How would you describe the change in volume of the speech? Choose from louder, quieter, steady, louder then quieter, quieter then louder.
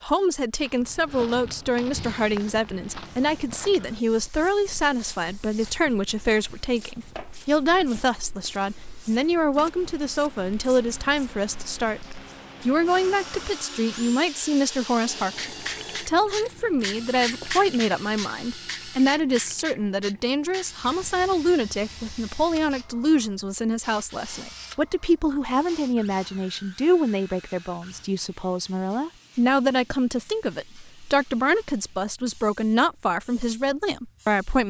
steady.